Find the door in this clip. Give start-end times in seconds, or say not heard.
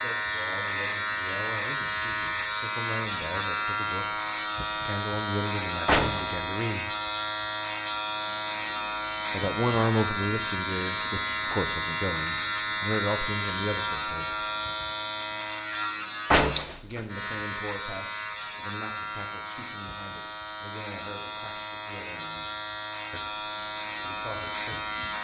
5.8-6.3, 16.3-17.0.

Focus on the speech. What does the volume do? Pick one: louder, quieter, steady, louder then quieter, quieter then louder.
louder then quieter.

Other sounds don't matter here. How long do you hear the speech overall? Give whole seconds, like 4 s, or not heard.
20 s.